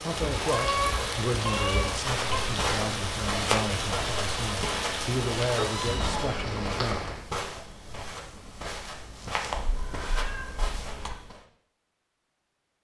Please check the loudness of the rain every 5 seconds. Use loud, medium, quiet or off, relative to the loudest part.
loud, loud, off.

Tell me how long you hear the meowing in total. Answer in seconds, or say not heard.
5 s.